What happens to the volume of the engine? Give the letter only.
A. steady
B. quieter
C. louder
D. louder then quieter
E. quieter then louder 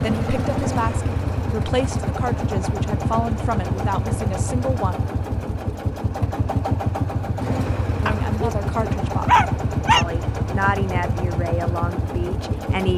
A.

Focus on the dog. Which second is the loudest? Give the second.
9 s.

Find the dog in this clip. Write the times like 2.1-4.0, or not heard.
8.1-10.1.